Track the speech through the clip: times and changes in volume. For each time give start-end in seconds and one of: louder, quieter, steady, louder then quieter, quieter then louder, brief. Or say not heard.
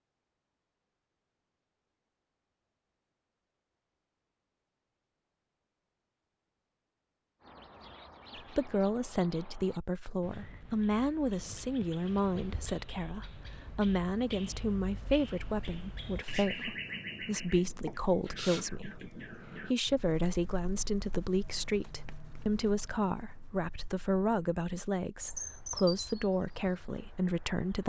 8.3-27.8 steady.